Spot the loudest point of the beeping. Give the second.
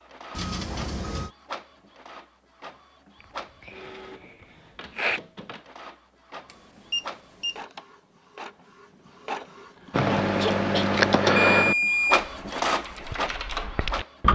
12 s.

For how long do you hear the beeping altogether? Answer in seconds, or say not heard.
3 s.